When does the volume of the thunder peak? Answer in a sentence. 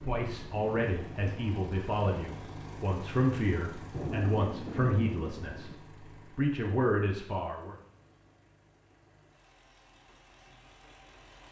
The volume of the thunder peaks at 4 seconds.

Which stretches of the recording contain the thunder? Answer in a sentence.
You can hear the thunder from 3.9 to 5.8 s.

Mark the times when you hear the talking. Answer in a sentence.
The talking can be heard from 0.0 to 7.8 s.